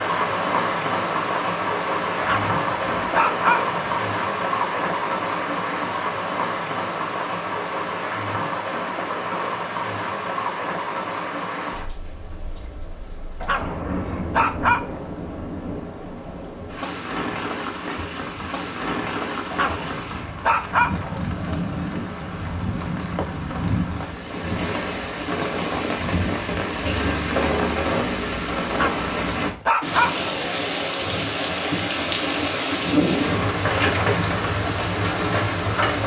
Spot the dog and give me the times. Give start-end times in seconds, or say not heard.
2.2-3.8, 13.4-15.1, 19.5-21.2, 28.7-30.5.